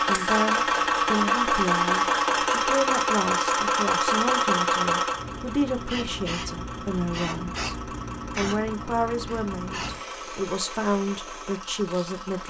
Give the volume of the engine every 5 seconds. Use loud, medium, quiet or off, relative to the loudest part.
loud, quiet, quiet.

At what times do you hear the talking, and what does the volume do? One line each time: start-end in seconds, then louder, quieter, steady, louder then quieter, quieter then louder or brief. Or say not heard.
0.0-12.4 steady.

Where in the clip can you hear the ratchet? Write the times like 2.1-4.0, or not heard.
not heard.